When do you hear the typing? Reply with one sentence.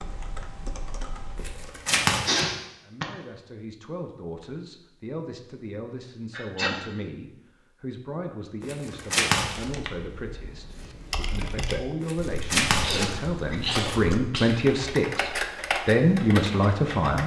The typing can be heard from 0.0 to 1.8 s and from 9.6 to 17.2 s.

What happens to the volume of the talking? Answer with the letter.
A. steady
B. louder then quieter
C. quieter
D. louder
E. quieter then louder
D.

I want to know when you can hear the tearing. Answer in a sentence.
You can hear the tearing from 1.4 to 2.5 s, from 8.6 to 9.7 s and from 12.0 to 14.0 s.